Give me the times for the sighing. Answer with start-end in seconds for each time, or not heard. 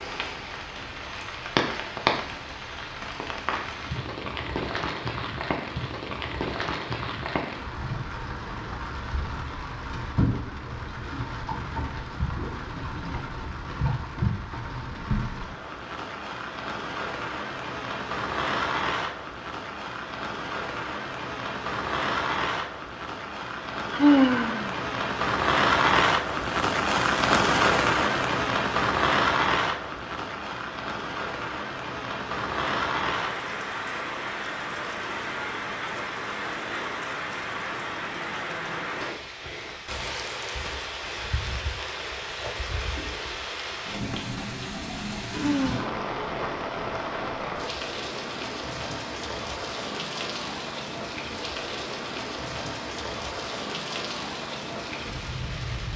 23.9-24.8, 45.3-45.9.